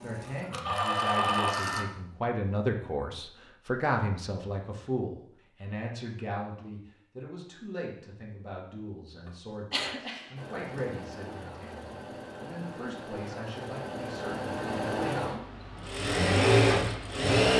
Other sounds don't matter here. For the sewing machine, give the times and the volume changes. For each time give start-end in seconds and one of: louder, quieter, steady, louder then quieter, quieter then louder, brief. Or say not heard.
0.0-1.9 brief
10.3-17.5 louder.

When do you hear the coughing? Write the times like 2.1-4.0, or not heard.
9.2-10.9.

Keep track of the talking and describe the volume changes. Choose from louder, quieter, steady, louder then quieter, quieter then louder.
quieter.